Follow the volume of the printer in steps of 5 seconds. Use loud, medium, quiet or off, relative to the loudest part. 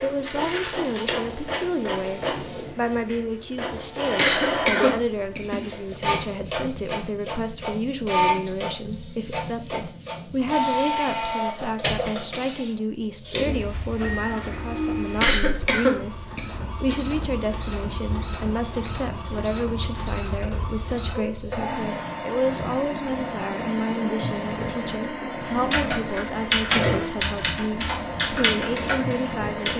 loud, loud, loud, medium, loud, loud.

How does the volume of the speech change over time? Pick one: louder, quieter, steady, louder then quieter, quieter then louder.
steady.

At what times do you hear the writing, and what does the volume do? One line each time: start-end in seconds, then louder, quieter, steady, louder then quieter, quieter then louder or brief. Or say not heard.
not heard.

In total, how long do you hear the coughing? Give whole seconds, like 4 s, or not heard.
3 s.